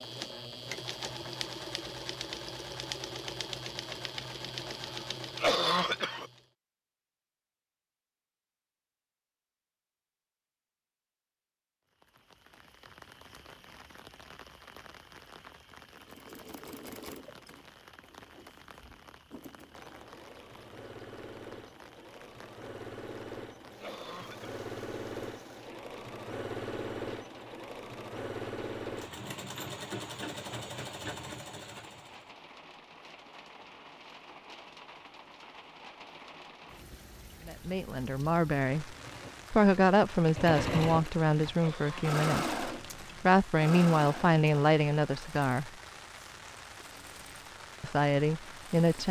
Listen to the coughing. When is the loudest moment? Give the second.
6 s.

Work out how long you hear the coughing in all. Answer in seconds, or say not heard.
2 s.